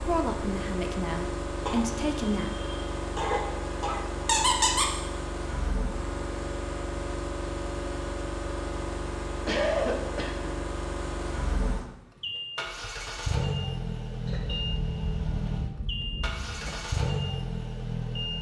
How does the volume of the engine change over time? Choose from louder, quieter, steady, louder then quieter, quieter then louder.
steady.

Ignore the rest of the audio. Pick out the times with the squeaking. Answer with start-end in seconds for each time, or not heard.
4.2-5.0.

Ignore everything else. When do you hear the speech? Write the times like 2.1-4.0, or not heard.
0.0-2.5.